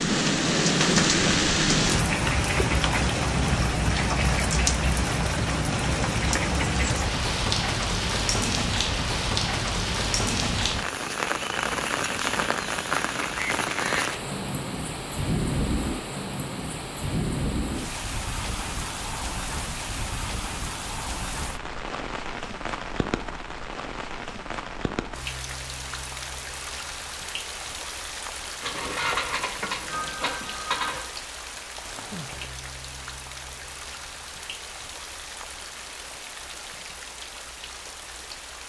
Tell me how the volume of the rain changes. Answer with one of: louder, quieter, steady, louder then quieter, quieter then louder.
quieter.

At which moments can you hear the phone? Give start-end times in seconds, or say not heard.
28.6-31.1.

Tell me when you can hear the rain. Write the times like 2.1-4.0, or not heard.
0.0-38.6.